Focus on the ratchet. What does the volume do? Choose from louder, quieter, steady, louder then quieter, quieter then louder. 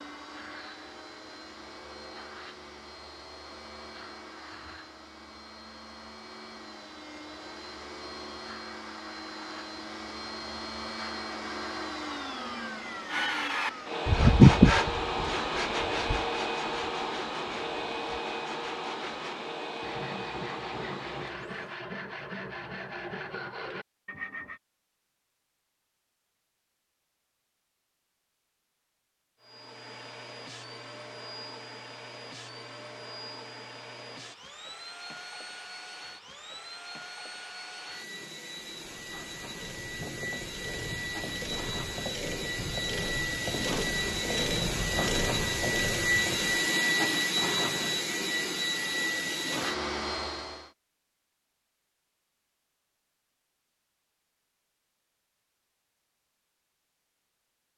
louder.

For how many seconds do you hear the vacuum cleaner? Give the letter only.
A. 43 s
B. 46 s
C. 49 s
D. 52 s
A.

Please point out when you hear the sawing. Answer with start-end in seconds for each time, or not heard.
13.1-24.6.